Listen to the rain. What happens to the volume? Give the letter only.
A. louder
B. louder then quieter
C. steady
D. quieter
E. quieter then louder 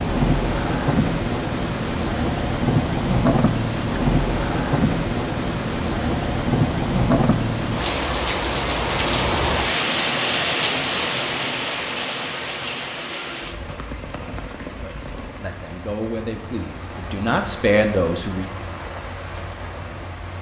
D.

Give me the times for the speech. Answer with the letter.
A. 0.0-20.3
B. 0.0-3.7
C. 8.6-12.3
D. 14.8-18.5
D.